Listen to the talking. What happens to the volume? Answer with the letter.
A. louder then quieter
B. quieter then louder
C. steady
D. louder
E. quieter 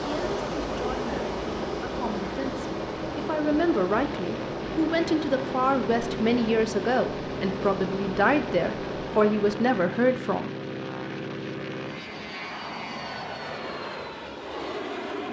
D.